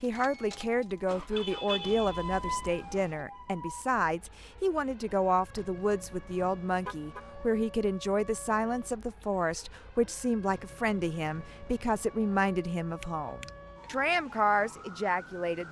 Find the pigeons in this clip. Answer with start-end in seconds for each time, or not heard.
not heard.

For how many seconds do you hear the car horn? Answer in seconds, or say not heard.
2 s.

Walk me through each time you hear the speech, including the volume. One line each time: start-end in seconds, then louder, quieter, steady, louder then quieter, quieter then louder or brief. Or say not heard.
0.0-15.6 steady.